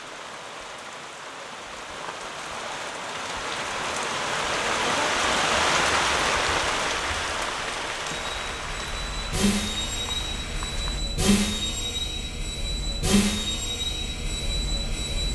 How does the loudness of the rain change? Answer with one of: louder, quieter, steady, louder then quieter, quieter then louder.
louder then quieter.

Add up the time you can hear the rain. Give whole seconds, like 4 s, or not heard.
11 s.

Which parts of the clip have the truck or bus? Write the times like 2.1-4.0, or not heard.
8.1-15.2.